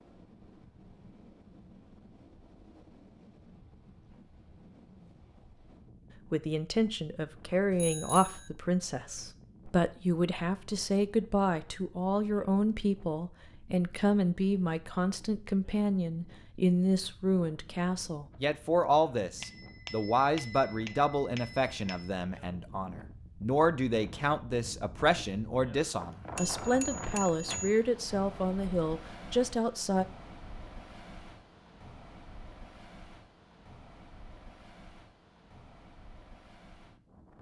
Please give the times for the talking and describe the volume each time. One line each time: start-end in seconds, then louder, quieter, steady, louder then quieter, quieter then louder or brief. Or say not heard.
6.3-30.1 steady.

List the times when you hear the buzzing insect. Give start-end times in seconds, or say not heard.
not heard.